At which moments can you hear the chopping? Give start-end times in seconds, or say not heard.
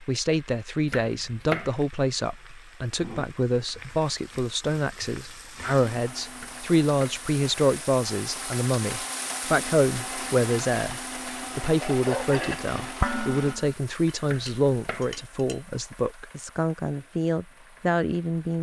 0.8-1.8, 6.3-7.2, 14.2-15.2.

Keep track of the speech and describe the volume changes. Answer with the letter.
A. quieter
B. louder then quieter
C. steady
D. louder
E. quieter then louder
C.